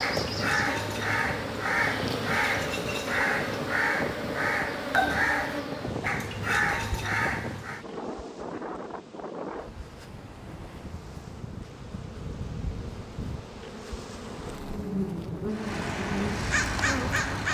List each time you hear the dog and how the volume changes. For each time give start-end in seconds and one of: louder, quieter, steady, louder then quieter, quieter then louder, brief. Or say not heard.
not heard.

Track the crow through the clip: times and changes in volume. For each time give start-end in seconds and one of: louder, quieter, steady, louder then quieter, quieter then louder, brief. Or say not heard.
0.0-7.8 steady
15.5-17.5 brief.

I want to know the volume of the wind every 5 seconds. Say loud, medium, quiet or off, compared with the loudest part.
loud, loud, medium, loud.